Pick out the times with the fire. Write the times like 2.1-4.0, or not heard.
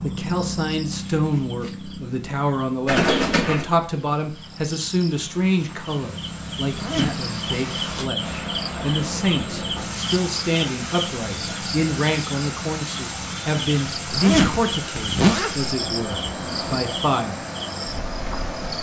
not heard.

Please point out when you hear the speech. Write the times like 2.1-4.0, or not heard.
0.0-17.4.